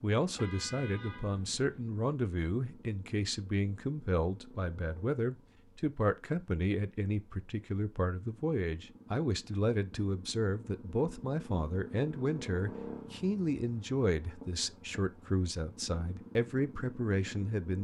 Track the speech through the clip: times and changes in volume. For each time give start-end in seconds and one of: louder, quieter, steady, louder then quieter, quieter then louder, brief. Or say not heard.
0.0-17.7 steady.